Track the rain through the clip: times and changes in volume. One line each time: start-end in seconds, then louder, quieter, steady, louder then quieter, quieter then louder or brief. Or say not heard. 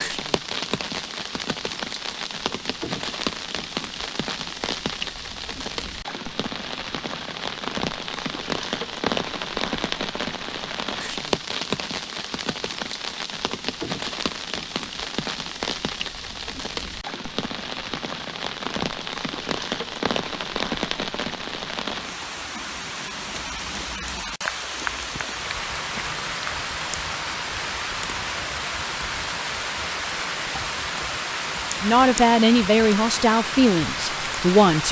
0.0-34.8 steady.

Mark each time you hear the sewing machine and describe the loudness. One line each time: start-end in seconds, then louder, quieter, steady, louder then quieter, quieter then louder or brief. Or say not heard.
not heard.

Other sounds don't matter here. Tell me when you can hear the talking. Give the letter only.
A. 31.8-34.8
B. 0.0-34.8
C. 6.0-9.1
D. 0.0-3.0
A.